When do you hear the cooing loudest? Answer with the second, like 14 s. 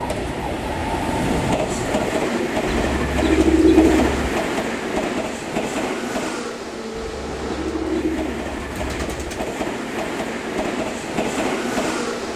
4 s.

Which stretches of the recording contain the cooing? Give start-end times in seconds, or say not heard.
2.6-4.3, 7.0-9.5.